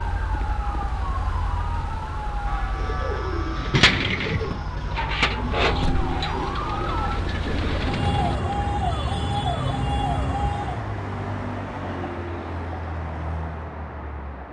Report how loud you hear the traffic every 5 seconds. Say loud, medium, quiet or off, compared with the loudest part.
medium, loud, loud.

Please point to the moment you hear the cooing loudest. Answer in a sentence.
The volume of the cooing peaks at 4 seconds.